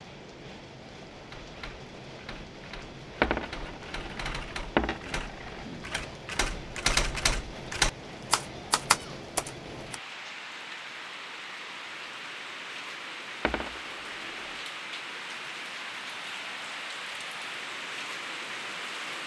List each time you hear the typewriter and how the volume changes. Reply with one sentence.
The typewriter can be heard from 1.1 to 9.9 s, getting louder.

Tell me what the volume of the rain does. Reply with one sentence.
The volume of the rain goes up.